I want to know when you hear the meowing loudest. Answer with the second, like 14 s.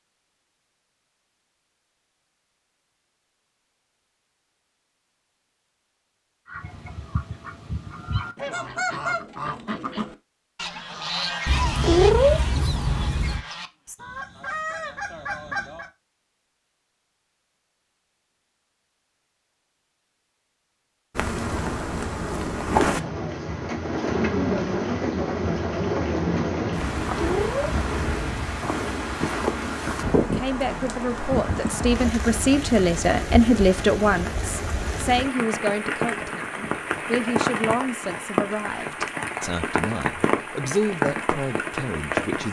12 s.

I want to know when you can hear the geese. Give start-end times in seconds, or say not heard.
6.5-15.9.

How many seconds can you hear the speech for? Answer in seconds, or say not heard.
12 s.